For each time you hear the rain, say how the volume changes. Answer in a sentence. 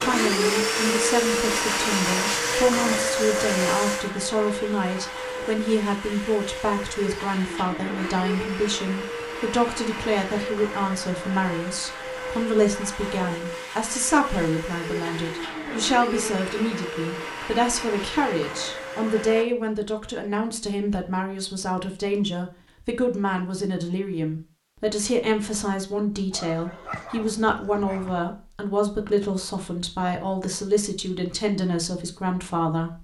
The rain can't be heard in this clip.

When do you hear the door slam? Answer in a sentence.
You can't hear the door slam here.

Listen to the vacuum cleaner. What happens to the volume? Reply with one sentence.
The loudness of the vacuum cleaner goes down.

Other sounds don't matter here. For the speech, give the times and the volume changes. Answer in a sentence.
You can hear the speech from 0.0 to 32.9 s, at a steady volume.